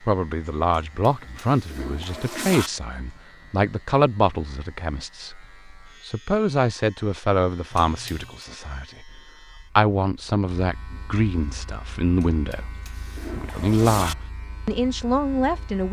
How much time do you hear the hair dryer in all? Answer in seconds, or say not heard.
not heard.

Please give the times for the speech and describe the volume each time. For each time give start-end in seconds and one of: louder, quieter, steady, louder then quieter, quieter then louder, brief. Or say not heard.
0.0-15.8 steady.